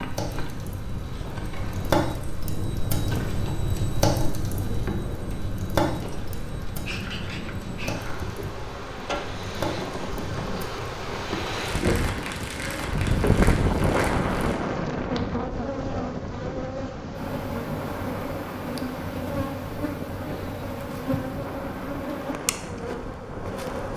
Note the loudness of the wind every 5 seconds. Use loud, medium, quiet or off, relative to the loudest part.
medium, medium, loud, medium, medium.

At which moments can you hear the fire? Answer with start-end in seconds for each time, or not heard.
0.0-14.6.